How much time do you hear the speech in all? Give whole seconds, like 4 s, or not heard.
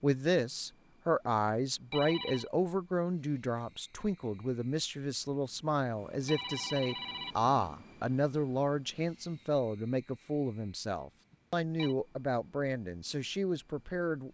14 s.